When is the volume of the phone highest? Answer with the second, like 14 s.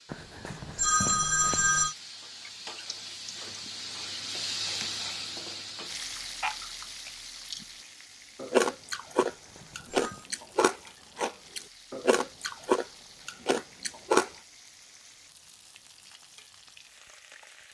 1 s.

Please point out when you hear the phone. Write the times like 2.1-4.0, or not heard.
0.1-1.9, 9.2-10.2.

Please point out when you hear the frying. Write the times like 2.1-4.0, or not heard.
0.0-17.6.